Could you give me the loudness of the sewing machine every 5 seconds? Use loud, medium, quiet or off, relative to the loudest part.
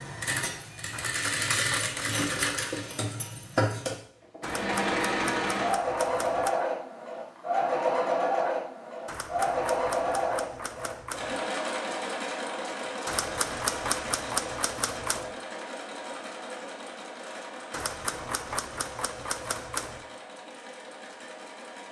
loud, loud, medium, quiet, quiet.